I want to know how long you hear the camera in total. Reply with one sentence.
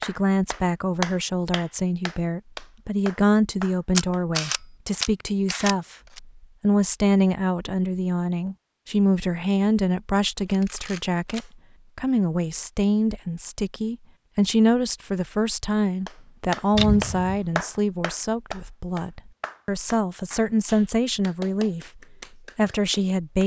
The camera can be heard for 4 seconds in total.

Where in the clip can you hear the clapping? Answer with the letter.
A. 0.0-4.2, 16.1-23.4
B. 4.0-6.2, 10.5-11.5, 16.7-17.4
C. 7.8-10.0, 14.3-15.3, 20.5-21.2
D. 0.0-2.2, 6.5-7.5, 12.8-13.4
A.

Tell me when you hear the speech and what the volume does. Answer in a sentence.
The speech can be heard from 0.0 to 23.4 s, at a steady volume.